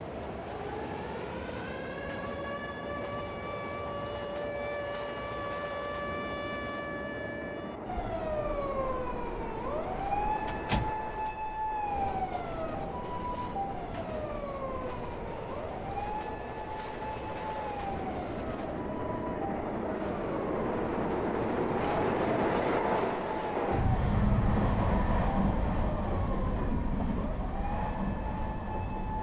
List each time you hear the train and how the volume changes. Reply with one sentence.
You can hear the train from 0.0 to 29.1 s, getting louder.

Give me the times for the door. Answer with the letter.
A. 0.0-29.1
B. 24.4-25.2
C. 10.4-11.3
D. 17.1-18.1
C.